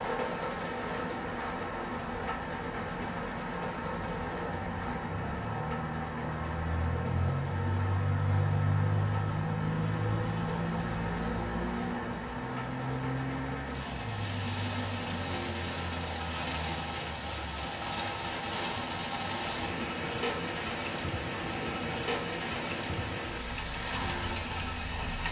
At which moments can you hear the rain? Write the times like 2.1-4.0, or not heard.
0.0-25.2.